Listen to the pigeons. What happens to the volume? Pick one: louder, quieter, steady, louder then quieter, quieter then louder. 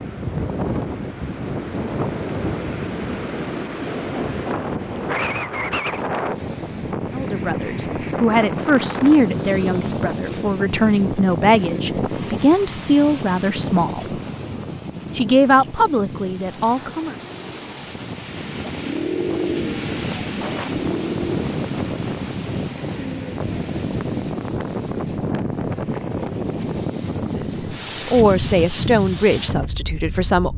louder then quieter.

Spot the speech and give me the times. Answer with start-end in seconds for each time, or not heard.
7.2-14.2, 15.2-17.1, 27.3-30.5.